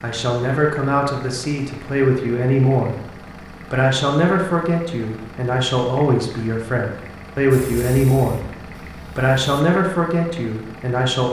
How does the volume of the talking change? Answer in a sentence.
The volume of the talking stays about the same.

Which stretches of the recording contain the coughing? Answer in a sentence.
The coughing can't be heard in this clip.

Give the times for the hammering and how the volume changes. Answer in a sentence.
The hammering can't be heard in this clip.